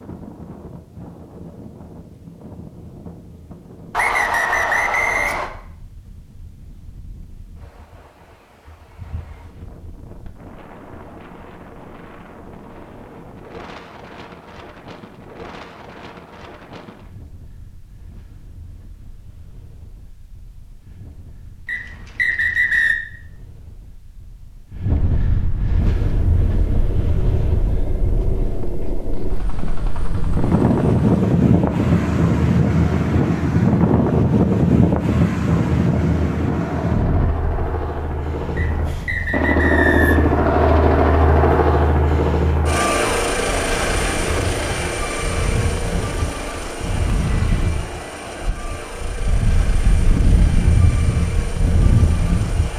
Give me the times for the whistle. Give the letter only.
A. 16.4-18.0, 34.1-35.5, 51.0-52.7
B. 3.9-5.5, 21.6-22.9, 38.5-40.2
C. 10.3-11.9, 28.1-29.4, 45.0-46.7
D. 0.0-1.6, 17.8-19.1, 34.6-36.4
B.